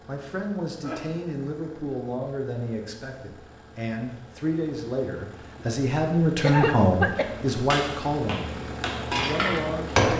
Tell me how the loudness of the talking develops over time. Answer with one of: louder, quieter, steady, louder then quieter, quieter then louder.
louder then quieter.